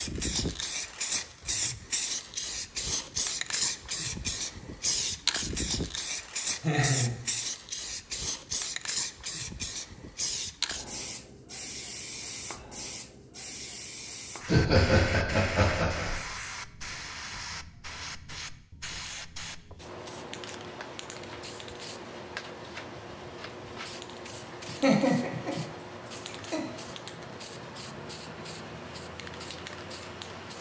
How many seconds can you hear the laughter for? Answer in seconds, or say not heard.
5 s.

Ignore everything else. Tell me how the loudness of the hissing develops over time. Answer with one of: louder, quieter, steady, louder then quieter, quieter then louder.
quieter.